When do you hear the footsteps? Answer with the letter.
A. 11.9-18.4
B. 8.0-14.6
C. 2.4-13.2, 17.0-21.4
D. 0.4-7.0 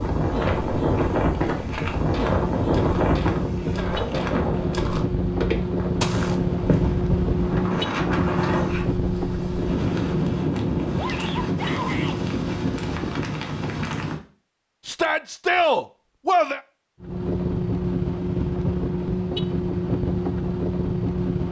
D.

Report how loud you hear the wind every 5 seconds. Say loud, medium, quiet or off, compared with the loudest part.
loud, medium, loud, off, off.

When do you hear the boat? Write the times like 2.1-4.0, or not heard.
2.4-13.2, 17.0-21.4.